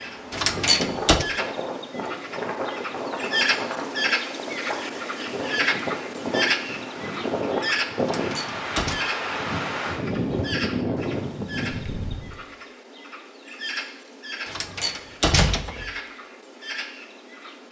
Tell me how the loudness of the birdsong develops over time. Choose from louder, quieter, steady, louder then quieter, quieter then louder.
quieter.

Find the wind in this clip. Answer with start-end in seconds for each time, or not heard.
0.0-12.4.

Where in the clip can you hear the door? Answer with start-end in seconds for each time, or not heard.
0.3-1.2, 8.0-9.0, 14.4-15.9.